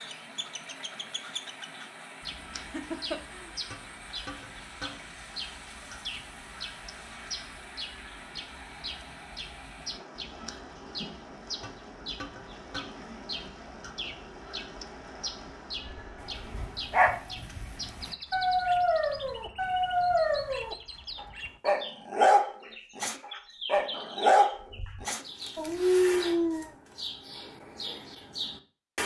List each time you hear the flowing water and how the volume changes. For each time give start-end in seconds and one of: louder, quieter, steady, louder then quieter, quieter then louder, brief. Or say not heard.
0.0-17.1 steady.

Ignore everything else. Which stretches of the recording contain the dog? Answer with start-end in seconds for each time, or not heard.
16.2-26.8.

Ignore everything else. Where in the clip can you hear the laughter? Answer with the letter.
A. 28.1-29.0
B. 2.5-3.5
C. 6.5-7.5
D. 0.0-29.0
B.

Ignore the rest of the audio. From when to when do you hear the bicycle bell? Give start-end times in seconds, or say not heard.
not heard.